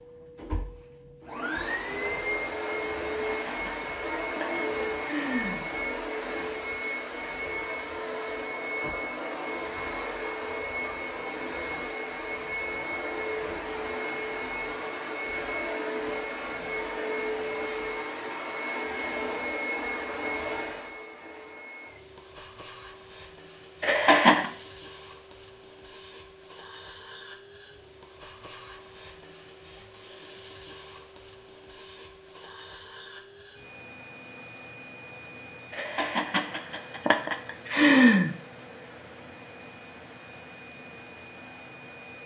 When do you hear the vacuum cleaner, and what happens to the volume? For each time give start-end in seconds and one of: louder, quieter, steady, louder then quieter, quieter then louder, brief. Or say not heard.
0.0-42.2 quieter.